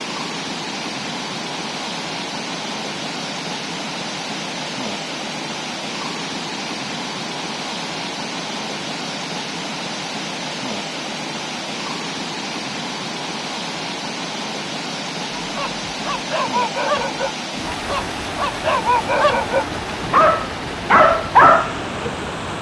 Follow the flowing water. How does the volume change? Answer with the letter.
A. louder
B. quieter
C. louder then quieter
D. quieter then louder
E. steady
E.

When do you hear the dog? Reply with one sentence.
You can hear the dog from 15.4 to 21.8 s.